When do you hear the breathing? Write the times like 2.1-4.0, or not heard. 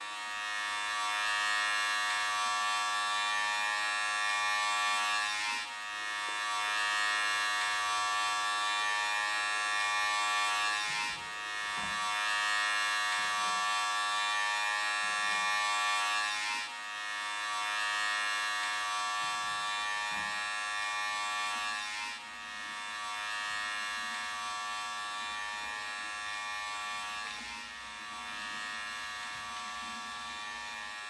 not heard.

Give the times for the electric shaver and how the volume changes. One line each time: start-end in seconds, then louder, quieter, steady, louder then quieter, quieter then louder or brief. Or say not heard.
0.0-31.0 quieter.